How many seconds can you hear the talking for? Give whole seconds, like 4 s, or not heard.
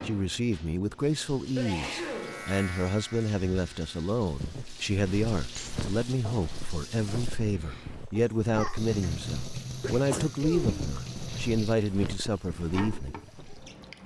13 s.